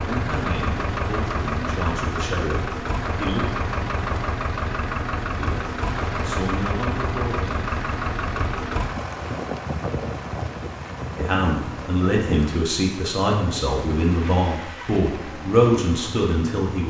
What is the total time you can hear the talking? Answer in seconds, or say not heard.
11 s.